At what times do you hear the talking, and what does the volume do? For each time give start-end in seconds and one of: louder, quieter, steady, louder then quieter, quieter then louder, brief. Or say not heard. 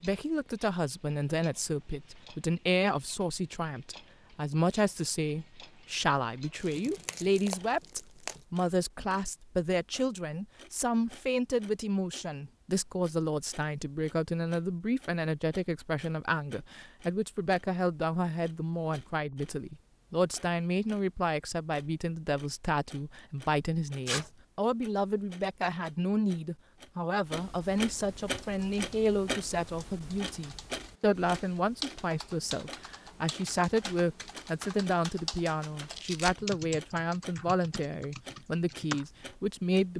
0.0-39.9 steady.